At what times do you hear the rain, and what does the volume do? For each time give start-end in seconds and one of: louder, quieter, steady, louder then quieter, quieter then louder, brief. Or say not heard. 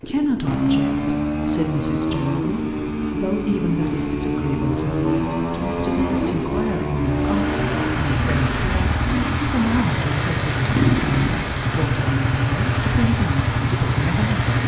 7.0-14.6 steady.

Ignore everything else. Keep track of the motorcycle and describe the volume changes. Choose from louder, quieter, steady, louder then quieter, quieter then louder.
steady.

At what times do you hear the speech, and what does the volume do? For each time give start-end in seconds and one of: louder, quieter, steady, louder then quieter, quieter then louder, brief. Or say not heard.
0.1-14.4 steady.